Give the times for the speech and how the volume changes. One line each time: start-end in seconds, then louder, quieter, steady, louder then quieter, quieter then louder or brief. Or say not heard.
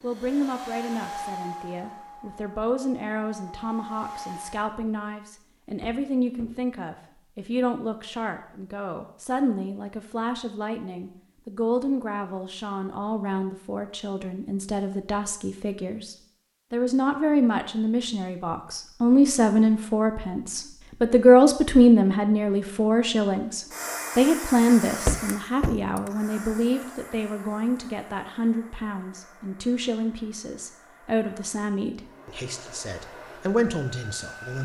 0.0-34.6 louder then quieter.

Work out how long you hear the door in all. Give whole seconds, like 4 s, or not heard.
2 s.